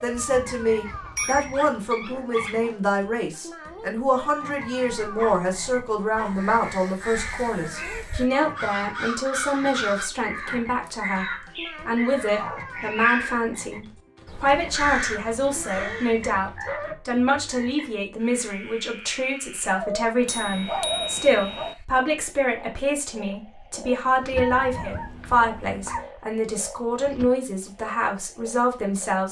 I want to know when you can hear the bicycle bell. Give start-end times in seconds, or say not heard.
0.1-1.6, 20.2-21.8.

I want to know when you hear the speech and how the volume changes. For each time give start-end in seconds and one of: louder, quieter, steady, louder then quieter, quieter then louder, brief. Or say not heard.
0.0-29.2 steady.